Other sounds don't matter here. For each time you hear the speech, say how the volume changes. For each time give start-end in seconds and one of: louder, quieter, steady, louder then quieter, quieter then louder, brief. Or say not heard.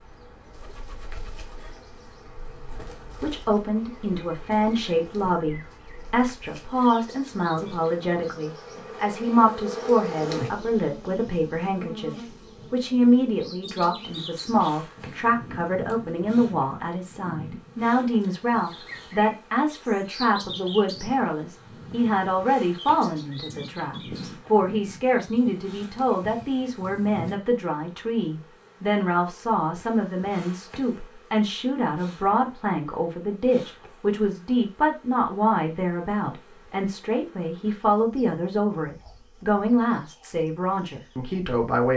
3.0-41.9 steady.